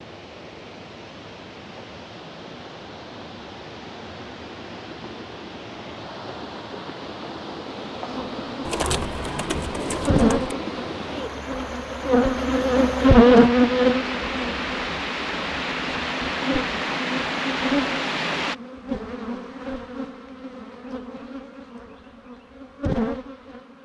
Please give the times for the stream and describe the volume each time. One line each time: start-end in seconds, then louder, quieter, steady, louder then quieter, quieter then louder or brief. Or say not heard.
0.0-18.6 louder.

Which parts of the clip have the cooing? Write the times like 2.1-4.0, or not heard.
8.7-10.6.